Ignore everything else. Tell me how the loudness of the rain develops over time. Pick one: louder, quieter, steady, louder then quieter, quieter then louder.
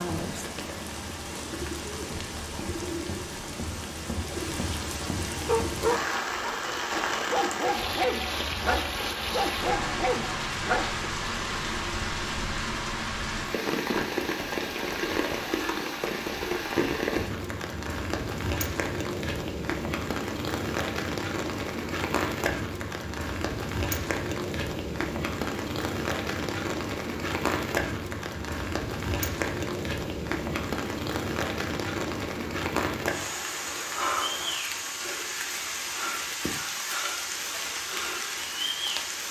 steady.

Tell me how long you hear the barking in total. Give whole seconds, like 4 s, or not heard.
6 s.